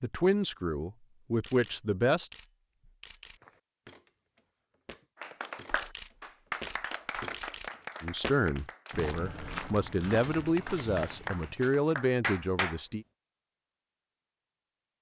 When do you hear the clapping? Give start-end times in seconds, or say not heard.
5.2-12.8.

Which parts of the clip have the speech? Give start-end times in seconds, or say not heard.
0.0-2.3, 8.0-13.1.